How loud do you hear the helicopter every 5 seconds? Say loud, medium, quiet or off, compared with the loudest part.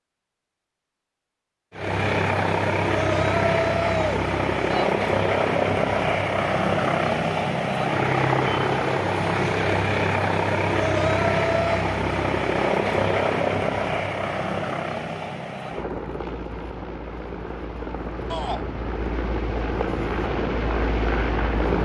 loud, loud, loud, medium, loud.